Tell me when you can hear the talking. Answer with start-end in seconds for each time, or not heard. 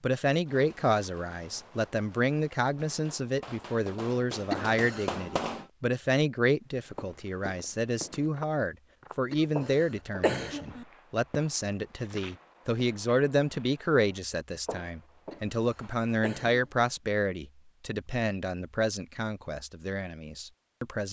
0.0-21.0.